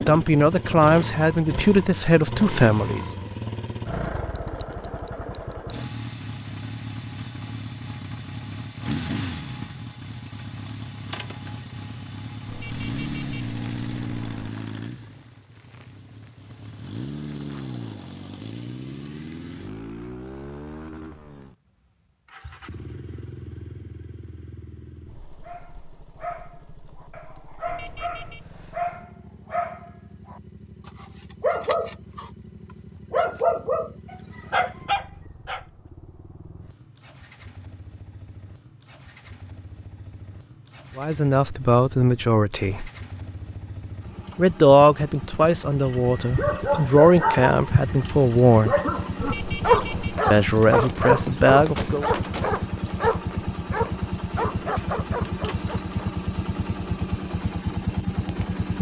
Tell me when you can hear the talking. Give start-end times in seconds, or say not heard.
0.1-3.1, 41.0-42.9, 44.4-48.8, 50.3-52.1.